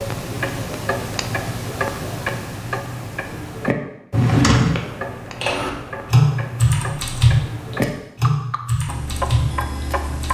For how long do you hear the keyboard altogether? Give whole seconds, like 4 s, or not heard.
5 s.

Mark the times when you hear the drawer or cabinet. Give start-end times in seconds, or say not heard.
4.1-4.8.